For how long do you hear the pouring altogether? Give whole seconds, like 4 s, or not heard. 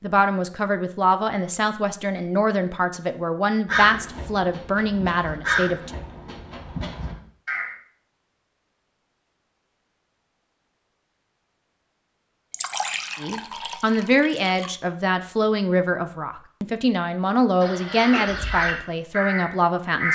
2 s.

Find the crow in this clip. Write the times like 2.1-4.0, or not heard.
3.6-7.7, 17.6-20.1.